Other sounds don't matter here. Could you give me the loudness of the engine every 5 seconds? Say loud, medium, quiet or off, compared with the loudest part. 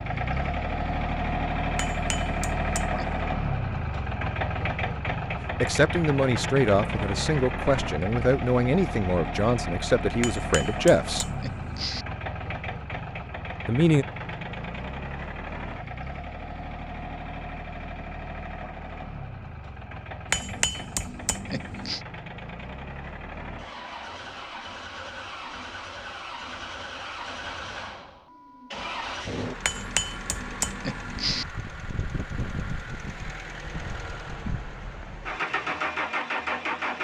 loud, loud, medium, medium, medium, medium, medium, loud.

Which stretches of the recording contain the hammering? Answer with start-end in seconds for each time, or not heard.
1.8-3.2, 10.2-12.1, 20.2-22.0, 29.6-31.4.